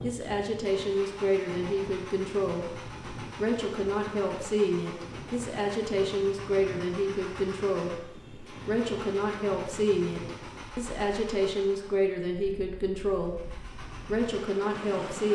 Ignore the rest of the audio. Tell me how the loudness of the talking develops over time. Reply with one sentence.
The loudness of the talking stays about the same.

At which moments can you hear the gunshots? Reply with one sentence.
You can't hear the gunshots here.